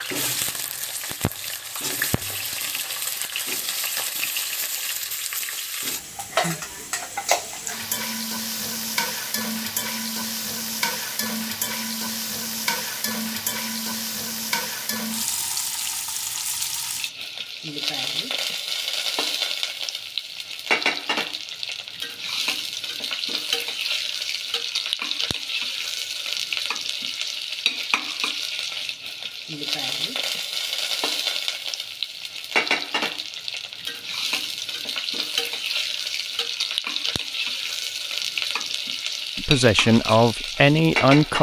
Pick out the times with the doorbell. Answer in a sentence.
You can't hear the doorbell here.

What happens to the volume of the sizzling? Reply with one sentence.
The volume of the sizzling stays about the same.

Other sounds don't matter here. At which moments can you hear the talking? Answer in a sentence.
You can hear the talking from 39.4 to 41.3 s.